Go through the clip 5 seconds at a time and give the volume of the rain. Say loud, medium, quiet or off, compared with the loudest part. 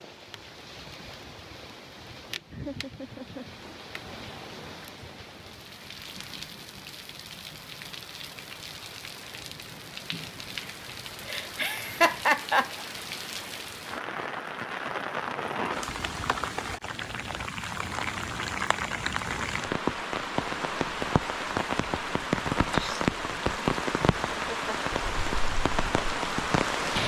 quiet, quiet, medium, loud, loud, loud.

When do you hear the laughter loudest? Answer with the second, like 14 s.
12 s.